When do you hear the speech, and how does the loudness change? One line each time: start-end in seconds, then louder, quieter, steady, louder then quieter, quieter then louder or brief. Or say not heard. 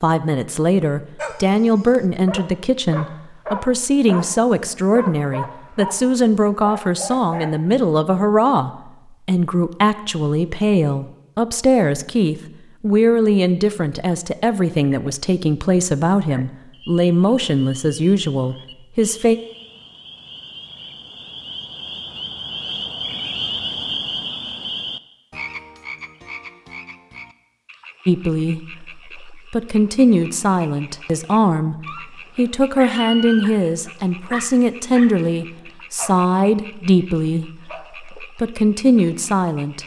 0.0-19.4 steady
28.1-39.8 steady.